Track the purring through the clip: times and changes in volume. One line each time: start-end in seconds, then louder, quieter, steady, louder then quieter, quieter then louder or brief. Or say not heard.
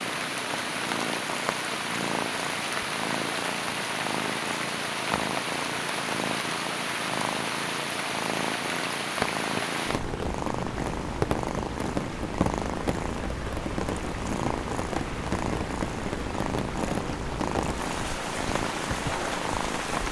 0.0-20.0 steady.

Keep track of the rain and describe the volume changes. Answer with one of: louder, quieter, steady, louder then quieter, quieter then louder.
steady.